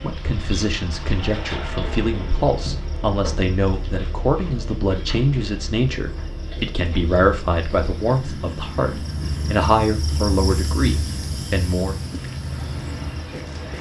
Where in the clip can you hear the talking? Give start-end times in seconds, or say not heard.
0.0-12.0.